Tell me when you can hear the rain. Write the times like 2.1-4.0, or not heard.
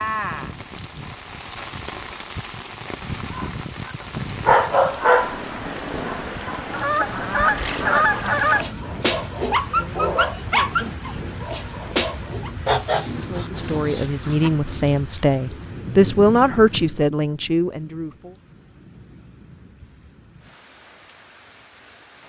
0.0-22.2.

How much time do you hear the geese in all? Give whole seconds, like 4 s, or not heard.
4 s.